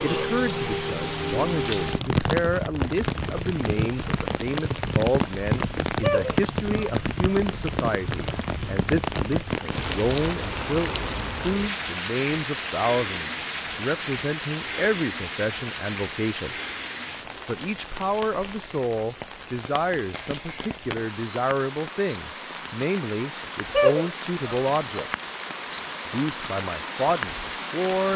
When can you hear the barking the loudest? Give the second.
24 s.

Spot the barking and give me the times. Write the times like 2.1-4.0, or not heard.
6.0-7.3, 23.7-25.1.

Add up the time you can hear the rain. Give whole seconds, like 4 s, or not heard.
28 s.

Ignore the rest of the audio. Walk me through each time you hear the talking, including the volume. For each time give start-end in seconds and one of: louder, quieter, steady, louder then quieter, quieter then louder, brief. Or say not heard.
0.0-16.6 steady
17.4-25.1 steady
26.1-28.1 brief.